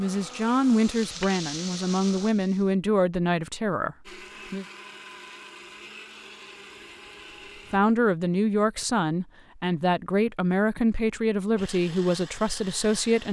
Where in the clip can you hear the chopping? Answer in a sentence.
The chopping can't be heard in this clip.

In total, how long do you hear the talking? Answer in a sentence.
The talking can be heard for 10 seconds in total.